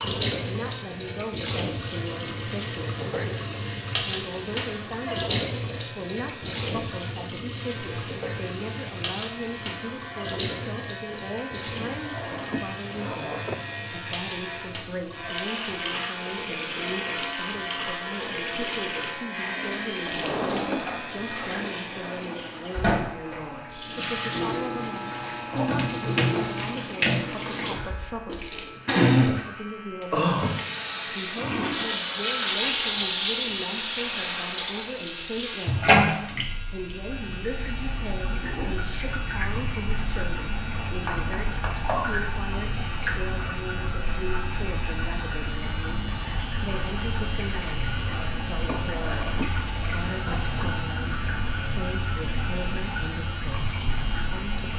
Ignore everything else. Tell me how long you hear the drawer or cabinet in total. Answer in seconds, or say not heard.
4 s.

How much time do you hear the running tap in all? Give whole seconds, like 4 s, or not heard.
55 s.